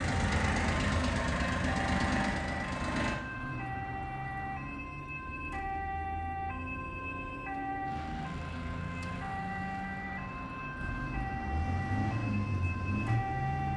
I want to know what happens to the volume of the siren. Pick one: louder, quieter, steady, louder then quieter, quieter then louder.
steady.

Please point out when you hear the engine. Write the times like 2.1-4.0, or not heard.
0.0-3.2, 10.8-13.7.